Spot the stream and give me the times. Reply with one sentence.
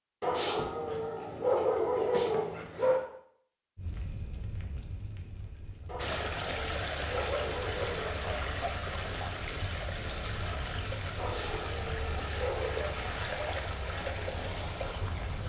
The stream can be heard from 6.0 to 15.4 s.